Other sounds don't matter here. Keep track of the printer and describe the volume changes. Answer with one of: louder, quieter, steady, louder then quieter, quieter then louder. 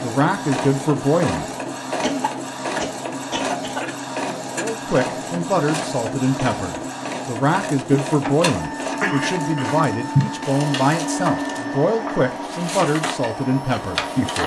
steady.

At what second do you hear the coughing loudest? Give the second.
10 s.